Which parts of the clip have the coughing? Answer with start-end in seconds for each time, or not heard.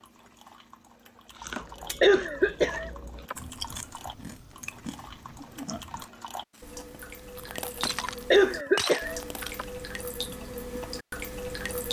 1.6-3.4, 7.8-9.7.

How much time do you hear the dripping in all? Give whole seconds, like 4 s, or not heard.
12 s.